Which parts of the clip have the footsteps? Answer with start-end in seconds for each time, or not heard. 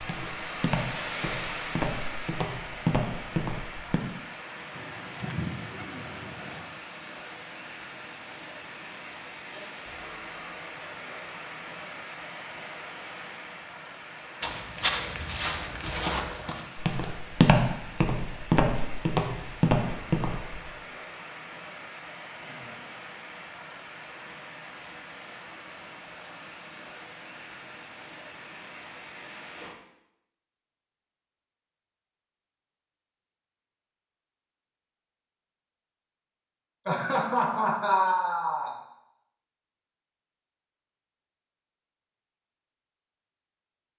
0.0-4.0, 14.4-20.7.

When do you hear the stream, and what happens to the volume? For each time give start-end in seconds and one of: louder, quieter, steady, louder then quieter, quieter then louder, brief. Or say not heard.
0.0-29.8 quieter.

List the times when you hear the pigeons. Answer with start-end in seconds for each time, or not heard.
4.7-6.7.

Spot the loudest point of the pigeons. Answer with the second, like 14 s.
5 s.